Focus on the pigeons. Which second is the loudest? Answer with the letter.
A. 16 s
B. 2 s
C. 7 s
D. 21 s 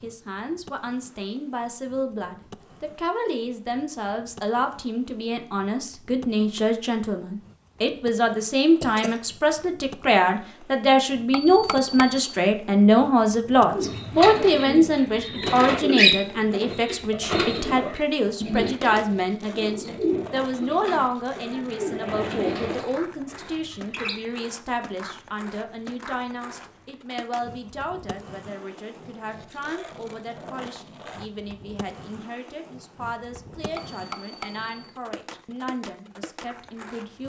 A.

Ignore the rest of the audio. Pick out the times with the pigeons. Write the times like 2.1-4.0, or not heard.
13.7-24.4.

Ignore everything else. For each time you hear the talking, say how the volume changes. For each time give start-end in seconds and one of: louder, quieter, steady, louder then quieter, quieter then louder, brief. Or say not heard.
0.0-37.2 louder then quieter.